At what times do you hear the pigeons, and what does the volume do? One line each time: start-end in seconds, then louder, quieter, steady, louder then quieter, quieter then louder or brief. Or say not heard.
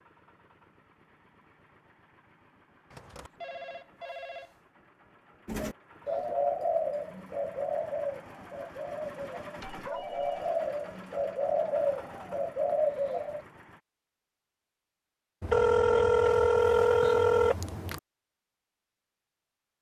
5.5-13.4 quieter then louder.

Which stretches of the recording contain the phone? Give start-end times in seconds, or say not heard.
2.9-4.6, 9.6-10.4, 15.4-18.0.